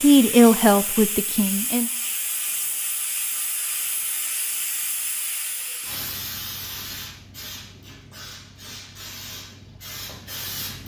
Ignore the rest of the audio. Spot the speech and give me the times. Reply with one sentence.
You can hear the speech from 0.0 to 1.9 s.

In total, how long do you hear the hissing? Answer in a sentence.
You can hear the hissing for 11 seconds altogether.